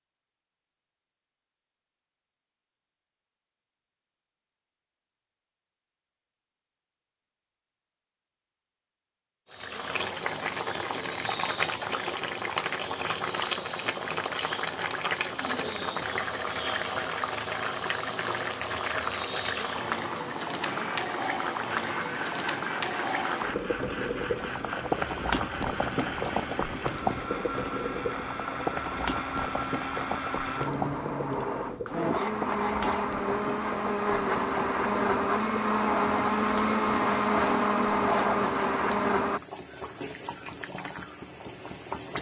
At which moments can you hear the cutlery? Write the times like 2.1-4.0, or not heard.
not heard.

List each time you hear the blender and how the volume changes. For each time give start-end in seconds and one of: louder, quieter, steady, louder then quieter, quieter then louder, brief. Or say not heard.
20.6-39.4 louder.